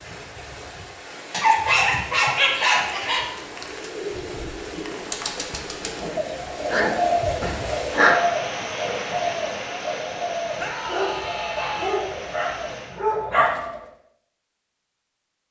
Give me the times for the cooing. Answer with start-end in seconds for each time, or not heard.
3.2-13.9.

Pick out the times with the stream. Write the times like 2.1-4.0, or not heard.
0.0-13.0.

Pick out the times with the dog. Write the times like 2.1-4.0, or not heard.
1.3-3.3, 6.0-8.2, 10.8-13.6.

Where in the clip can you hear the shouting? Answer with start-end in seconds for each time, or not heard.
10.6-12.1.